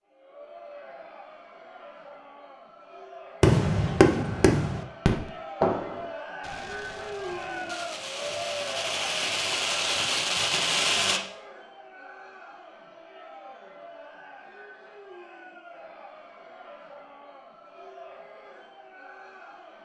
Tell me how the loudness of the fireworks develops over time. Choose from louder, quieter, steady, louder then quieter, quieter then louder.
quieter then louder.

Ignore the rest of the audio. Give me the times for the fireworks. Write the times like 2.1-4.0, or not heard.
3.4-11.2.